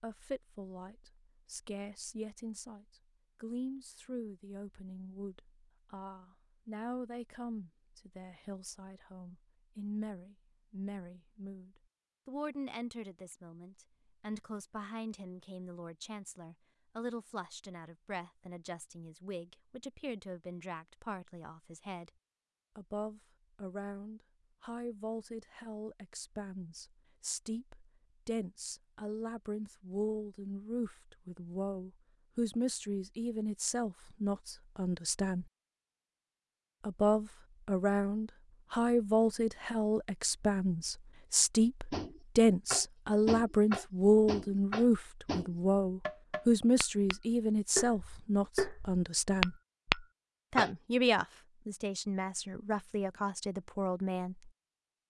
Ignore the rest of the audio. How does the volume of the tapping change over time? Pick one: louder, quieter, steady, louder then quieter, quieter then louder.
quieter then louder.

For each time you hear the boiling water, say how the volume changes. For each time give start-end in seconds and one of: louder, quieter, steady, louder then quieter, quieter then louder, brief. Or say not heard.
not heard.